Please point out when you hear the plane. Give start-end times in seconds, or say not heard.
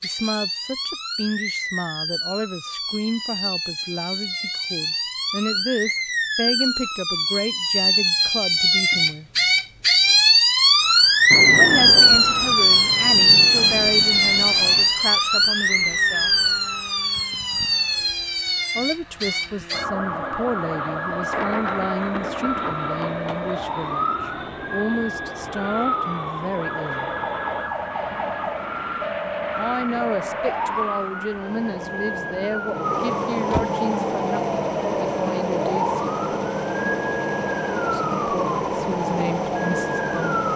10.6-40.5.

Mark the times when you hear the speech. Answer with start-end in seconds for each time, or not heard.
0.0-9.2, 11.6-16.3, 18.8-27.1, 29.6-36.0, 37.9-40.4.